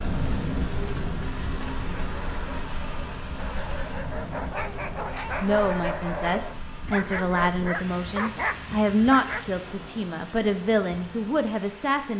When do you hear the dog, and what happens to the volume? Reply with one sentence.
The dog can be heard from 1.6 to 9.4 s, getting louder.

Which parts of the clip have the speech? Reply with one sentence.
You can hear the speech from 5.4 to 12.1 s.